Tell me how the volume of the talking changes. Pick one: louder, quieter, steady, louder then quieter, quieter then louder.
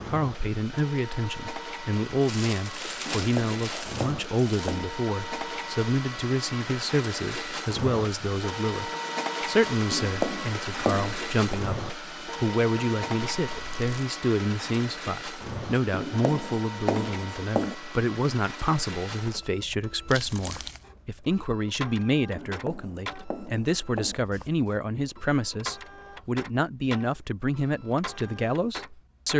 steady.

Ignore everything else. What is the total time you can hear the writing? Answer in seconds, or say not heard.
7 s.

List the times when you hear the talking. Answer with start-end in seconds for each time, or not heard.
0.1-29.3.